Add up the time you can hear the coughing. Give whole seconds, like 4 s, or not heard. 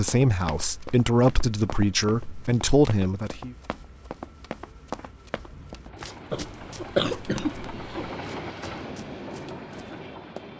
2 s.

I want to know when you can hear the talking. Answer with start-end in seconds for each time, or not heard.
0.0-3.5.